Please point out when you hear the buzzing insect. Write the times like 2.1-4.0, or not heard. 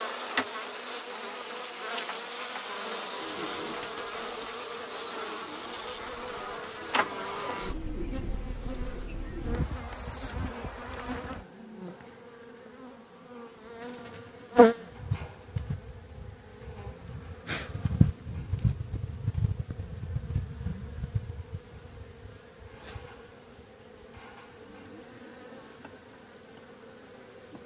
0.0-27.6.